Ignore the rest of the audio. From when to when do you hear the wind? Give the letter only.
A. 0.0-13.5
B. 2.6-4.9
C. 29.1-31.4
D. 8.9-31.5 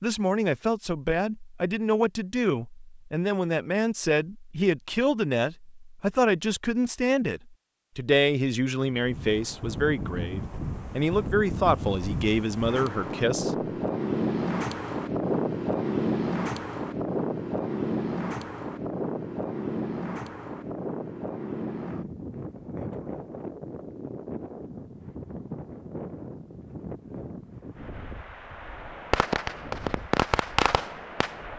D.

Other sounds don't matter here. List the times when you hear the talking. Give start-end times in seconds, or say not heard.
0.0-13.5.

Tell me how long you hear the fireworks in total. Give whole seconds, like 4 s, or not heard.
2 s.